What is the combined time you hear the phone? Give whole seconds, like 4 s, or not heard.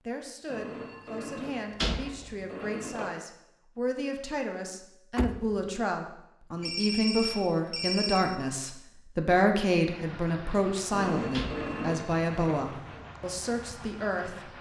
6 s.